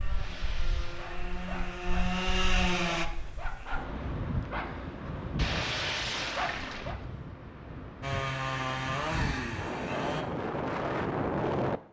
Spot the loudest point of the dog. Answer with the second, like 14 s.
6 s.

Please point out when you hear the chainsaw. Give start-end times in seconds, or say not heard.
0.0-3.0, 8.0-10.2.